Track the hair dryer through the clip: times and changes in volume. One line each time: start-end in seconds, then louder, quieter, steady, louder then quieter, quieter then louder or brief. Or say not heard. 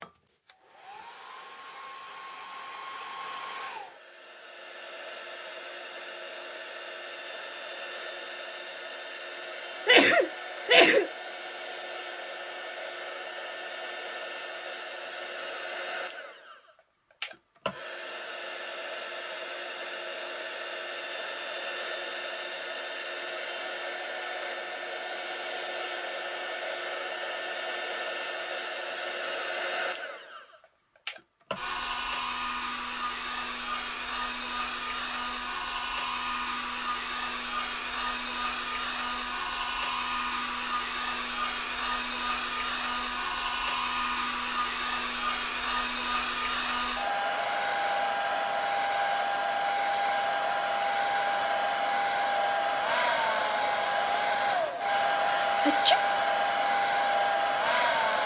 0.0-58.2 louder.